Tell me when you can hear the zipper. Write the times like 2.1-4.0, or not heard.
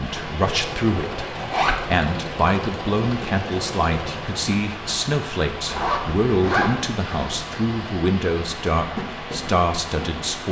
1.4-1.8, 5.7-7.0.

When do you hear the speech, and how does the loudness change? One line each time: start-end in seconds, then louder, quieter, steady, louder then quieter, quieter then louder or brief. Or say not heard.
0.0-10.4 steady.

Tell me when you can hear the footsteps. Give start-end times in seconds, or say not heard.
not heard.